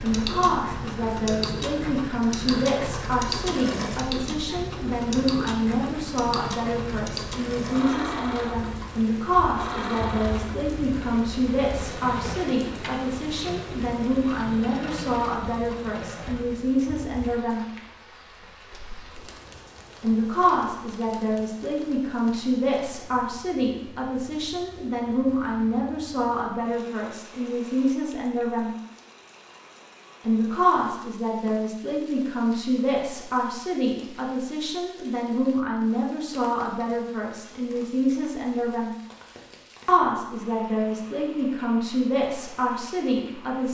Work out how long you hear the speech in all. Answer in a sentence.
The speech can be heard for 39 seconds in total.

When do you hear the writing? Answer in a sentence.
You can't hear the writing here.